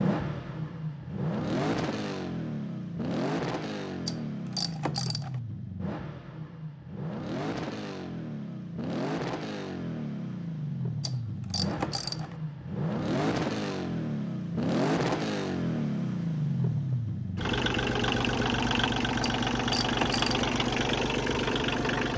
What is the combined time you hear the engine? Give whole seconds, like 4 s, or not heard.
22 s.